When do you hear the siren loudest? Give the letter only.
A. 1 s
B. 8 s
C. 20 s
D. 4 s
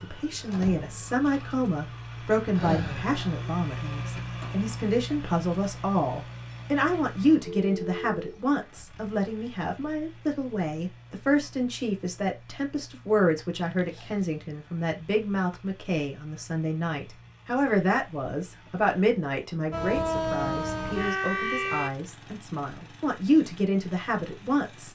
C.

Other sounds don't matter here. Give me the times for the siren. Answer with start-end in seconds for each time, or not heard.
0.0-3.5, 19.7-21.9.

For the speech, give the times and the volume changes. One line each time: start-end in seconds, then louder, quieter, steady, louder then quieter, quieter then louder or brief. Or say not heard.
0.0-24.9 steady.